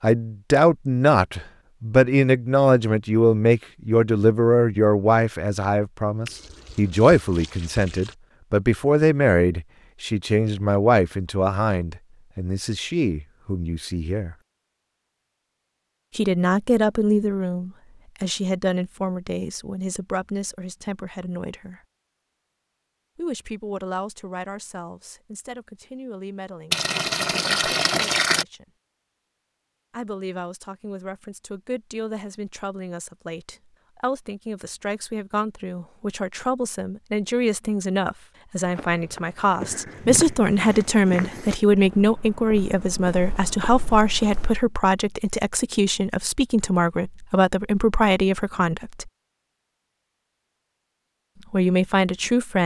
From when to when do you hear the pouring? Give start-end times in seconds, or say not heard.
6.2-8.2, 26.7-28.4.